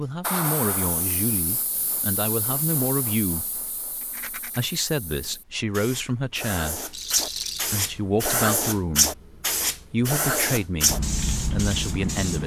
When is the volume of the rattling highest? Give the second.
7 s.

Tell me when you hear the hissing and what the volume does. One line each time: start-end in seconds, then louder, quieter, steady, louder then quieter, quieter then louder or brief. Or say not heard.
0.2-12.4 quieter then louder.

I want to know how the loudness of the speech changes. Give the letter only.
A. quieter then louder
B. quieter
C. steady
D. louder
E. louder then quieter
C.